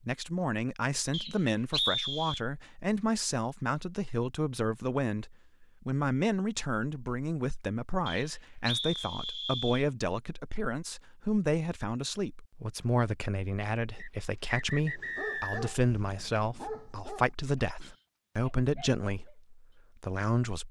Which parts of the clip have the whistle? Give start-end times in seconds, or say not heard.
1.1-2.4, 8.1-9.8, 13.9-15.7.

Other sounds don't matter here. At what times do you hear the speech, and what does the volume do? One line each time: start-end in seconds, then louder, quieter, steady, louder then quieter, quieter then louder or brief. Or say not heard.
0.0-20.6 steady.